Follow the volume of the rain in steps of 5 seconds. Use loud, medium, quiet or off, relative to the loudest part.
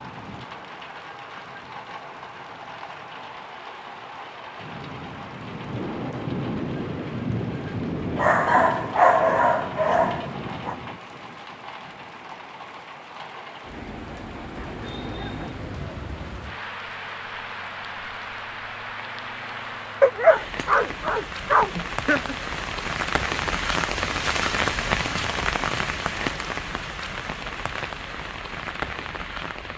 medium, loud, medium, medium, loud, loud.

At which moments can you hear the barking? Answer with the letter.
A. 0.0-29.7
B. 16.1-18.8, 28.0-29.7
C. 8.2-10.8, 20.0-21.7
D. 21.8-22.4
C.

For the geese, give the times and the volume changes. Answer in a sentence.
You can't hear the geese here.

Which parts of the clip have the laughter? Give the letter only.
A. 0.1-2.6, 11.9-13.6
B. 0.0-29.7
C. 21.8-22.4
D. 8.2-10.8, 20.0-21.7
C.